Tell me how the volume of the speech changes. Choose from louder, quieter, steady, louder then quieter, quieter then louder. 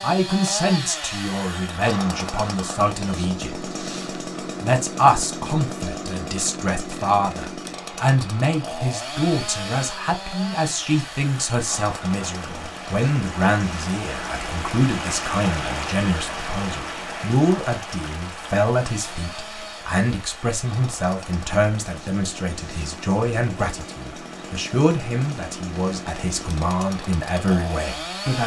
steady.